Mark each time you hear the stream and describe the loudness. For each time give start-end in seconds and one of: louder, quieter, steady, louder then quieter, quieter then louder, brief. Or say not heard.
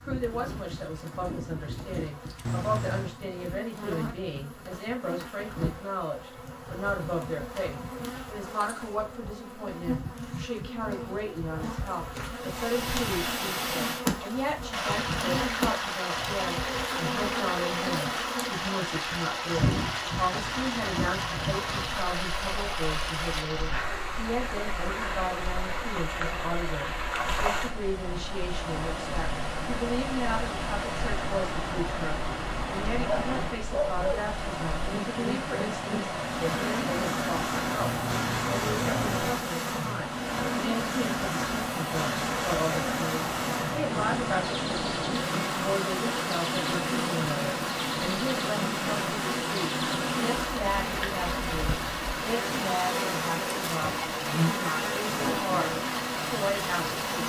12.3-57.2 steady.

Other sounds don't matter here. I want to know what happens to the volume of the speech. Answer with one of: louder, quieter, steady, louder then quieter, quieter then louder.
steady.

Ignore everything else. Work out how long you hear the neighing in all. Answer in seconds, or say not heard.
2 s.